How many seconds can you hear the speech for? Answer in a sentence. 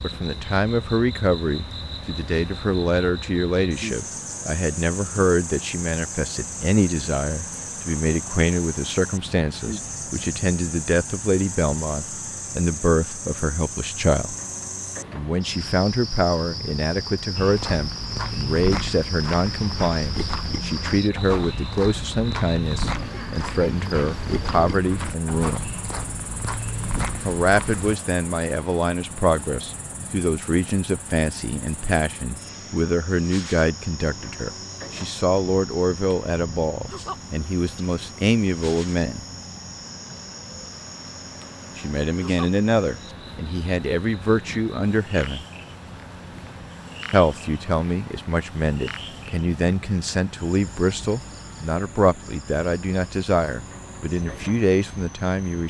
The speech can be heard for 49 seconds in total.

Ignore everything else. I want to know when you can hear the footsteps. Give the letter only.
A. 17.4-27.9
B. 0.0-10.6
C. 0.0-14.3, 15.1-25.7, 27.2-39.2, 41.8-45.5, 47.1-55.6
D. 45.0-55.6
A.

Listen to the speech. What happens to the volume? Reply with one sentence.
The volume of the speech stays about the same.